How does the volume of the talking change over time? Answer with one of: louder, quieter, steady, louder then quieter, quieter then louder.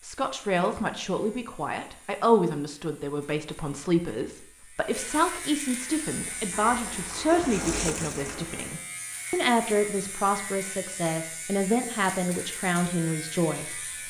steady.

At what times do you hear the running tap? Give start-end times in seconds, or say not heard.
6.2-8.8.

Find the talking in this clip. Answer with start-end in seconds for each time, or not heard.
0.0-14.0.